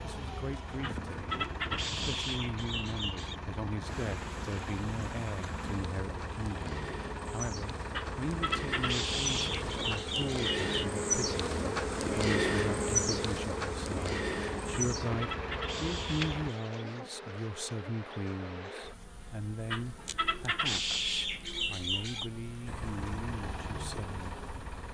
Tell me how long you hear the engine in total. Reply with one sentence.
You can hear the engine for 19 seconds altogether.